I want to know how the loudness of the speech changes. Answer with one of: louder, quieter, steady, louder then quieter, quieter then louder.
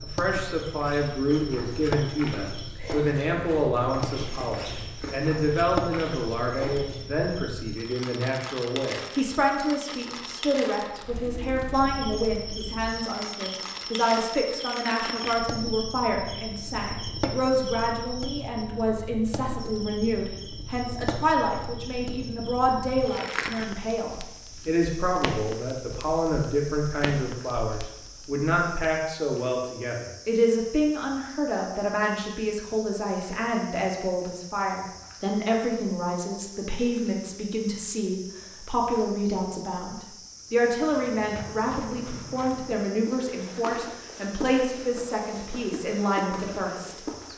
steady.